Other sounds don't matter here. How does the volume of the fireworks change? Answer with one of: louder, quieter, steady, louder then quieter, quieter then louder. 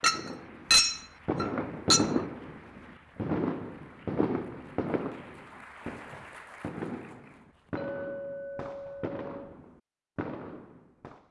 quieter.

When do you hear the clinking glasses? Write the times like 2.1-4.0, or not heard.
0.0-2.0, 7.8-9.6.